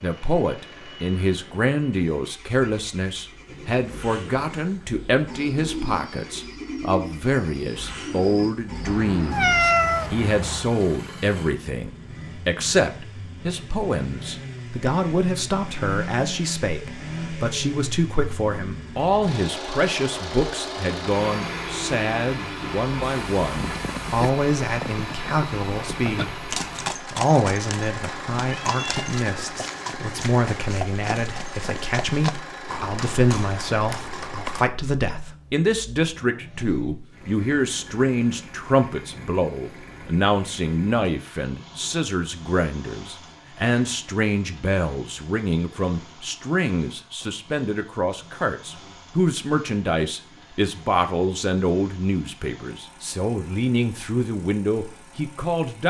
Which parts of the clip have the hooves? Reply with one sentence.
You can hear the hooves from 23.0 to 34.7 s.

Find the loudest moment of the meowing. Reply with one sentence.
The loudest moment of the meowing is at 10 seconds.